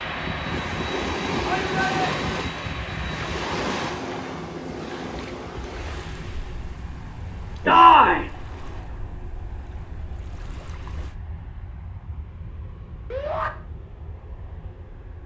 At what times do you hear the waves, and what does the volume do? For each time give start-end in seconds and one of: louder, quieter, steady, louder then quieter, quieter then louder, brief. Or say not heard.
0.0-11.2 quieter.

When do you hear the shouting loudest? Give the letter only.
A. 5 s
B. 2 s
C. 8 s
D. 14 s
C.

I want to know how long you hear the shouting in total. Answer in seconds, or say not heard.
2 s.